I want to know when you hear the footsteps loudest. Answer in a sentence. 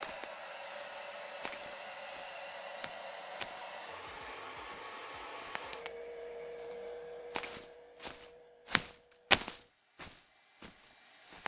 The volume of the footsteps peaks at 9 seconds.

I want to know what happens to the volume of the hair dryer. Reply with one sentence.
The loudness of the hair dryer goes down.